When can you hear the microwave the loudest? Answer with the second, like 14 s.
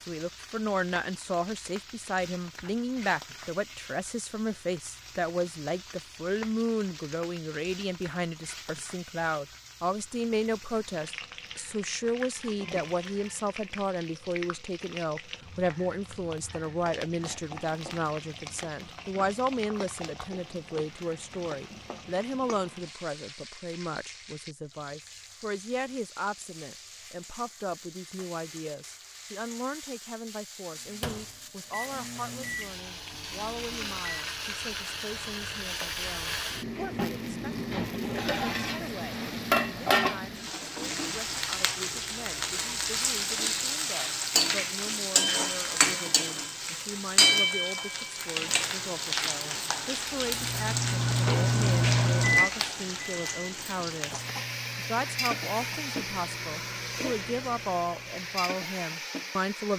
52 s.